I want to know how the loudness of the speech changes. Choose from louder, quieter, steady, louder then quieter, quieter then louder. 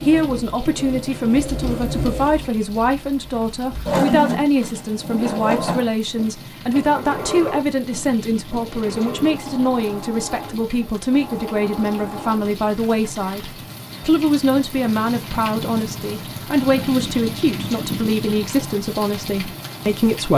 steady.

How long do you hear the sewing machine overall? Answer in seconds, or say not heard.
13 s.